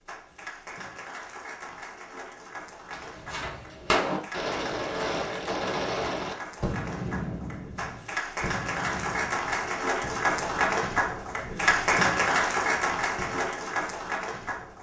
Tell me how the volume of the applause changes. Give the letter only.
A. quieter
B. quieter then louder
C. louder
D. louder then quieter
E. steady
C.